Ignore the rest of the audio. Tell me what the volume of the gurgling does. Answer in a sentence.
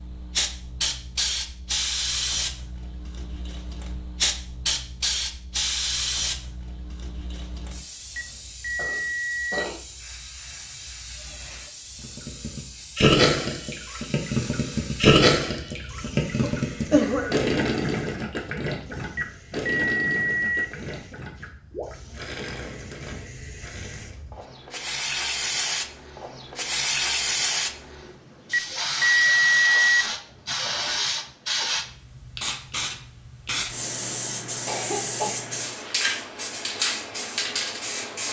The volume of the gurgling goes down.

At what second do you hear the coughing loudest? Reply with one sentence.
The loudest moment of the coughing is at 17 seconds.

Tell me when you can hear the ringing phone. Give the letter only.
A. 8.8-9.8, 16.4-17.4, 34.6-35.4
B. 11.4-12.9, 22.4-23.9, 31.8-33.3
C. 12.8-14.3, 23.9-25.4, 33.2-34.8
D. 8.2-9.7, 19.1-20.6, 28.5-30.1
D.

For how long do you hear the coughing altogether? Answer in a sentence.
You can hear the coughing for 3 seconds altogether.